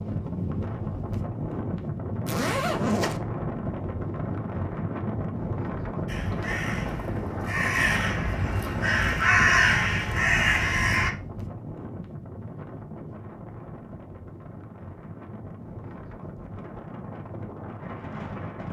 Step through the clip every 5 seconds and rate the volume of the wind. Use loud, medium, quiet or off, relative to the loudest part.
loud, loud, medium, medium.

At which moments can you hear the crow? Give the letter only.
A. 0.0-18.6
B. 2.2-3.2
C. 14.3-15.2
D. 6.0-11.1
D.